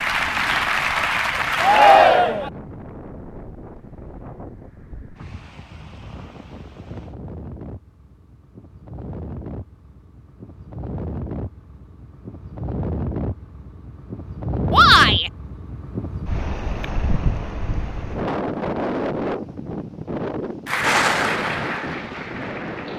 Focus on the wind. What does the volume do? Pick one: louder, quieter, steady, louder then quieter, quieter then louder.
louder.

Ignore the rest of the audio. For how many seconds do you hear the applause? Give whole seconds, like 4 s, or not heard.
4 s.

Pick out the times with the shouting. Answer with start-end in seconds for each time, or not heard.
1.6-2.5, 14.7-15.3.